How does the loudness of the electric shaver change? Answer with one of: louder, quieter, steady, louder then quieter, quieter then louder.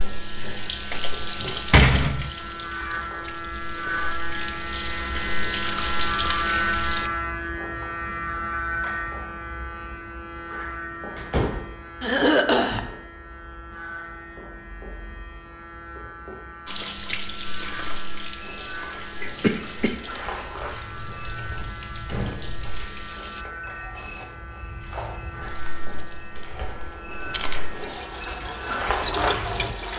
quieter.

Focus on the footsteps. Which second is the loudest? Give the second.
29 s.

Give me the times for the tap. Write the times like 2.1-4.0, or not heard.
0.0-7.1, 16.6-23.4, 25.4-29.9.